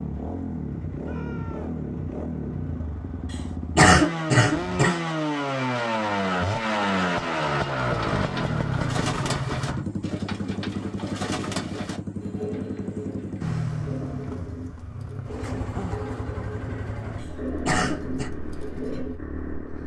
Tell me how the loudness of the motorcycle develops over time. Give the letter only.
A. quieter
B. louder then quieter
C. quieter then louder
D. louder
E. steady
B.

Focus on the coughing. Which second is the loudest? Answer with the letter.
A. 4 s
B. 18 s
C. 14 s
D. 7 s
A.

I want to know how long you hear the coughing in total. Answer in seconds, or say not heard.
3 s.